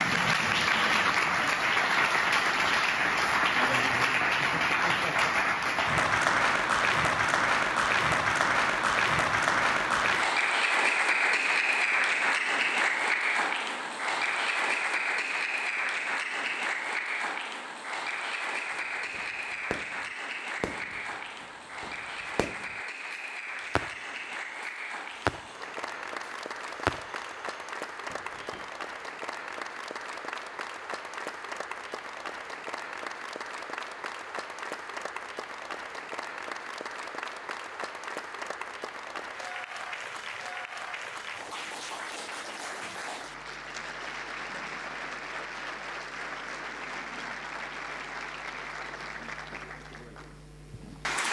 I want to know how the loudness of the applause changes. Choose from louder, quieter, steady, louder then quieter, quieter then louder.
quieter.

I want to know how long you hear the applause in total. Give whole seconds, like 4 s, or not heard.
51 s.